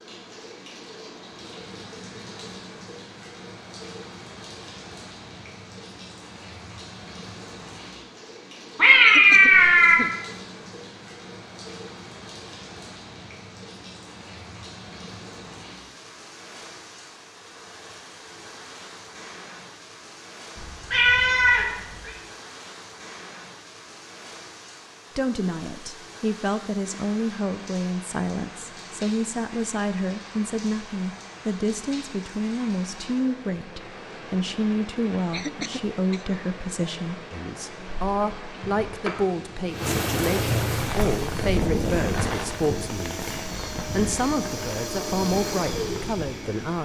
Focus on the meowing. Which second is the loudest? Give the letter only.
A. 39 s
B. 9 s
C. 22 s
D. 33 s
B.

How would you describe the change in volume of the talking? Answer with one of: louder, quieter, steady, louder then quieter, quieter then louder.
steady.